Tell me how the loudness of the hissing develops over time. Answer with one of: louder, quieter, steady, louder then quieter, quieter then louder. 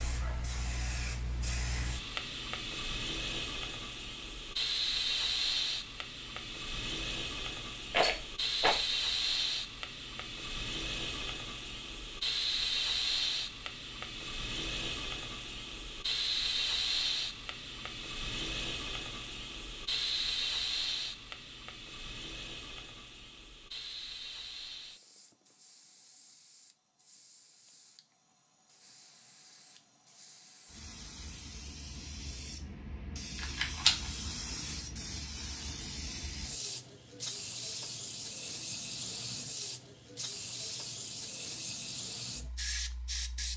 quieter then louder.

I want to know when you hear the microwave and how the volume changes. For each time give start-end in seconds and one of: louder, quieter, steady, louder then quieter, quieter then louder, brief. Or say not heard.
not heard.